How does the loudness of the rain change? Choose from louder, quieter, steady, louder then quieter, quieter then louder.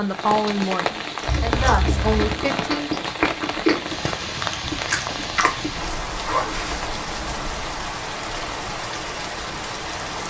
steady.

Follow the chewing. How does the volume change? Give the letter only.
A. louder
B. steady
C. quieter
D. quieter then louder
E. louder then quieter
E.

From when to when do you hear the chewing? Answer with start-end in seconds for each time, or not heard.
1.1-6.9.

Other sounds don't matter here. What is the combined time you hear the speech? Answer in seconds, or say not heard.
3 s.